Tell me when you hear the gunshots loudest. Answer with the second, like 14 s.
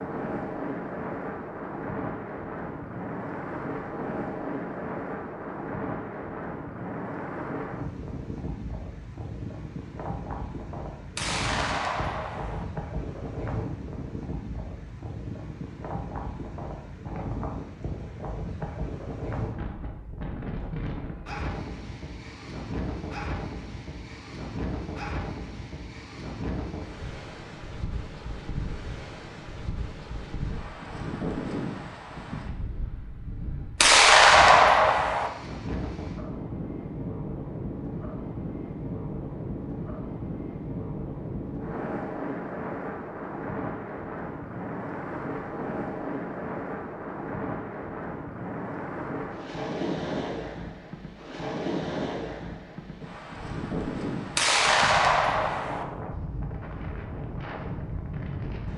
34 s.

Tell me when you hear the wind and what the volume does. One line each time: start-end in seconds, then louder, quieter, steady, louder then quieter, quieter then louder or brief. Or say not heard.
0.0-58.7 steady.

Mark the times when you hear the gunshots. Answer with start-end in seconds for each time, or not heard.
11.2-12.7, 33.8-35.3, 54.4-55.9.